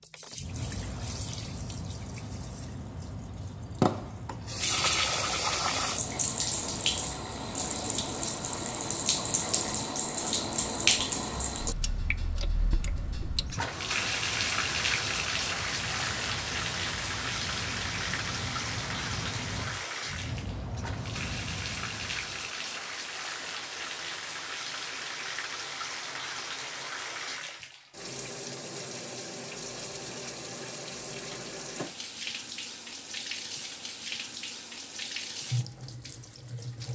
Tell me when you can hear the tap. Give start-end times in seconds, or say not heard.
0.0-36.8.